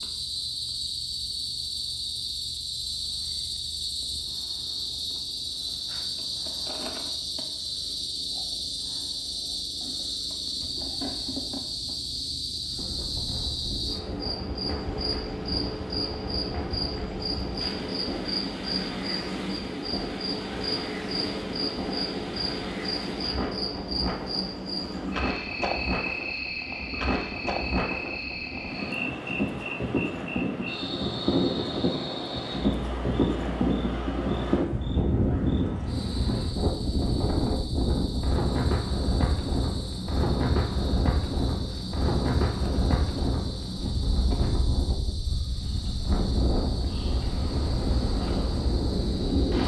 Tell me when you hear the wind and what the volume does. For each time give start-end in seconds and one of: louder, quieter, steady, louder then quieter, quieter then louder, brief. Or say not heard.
12.8-49.6 louder.